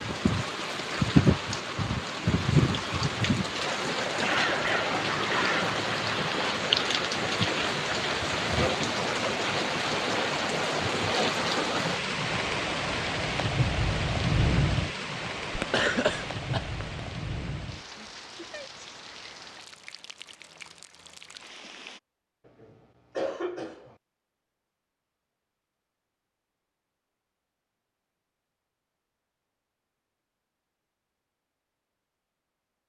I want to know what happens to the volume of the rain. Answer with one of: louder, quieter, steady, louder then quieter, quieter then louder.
quieter.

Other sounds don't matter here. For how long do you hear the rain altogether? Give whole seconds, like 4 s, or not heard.
22 s.